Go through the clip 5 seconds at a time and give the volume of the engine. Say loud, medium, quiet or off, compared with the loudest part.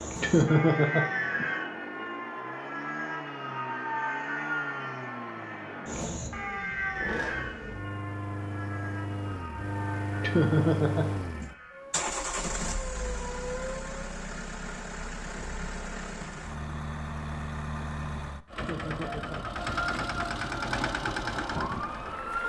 medium, medium, loud, loud, loud.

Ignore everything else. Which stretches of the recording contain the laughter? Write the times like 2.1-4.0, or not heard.
0.2-1.4, 10.2-11.4, 18.6-19.4.